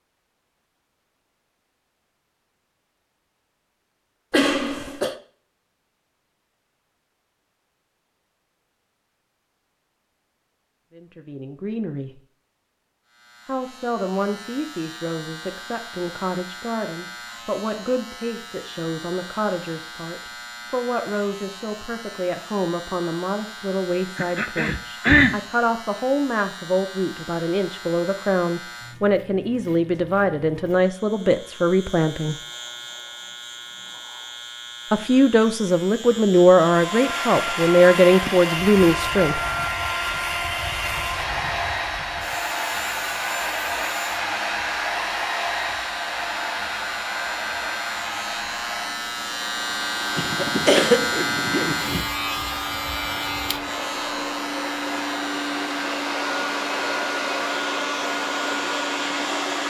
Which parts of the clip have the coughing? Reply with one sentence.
You can hear the coughing from 4.3 to 5.2 s, from 24.1 to 25.4 s and from 50.1 to 52.0 s.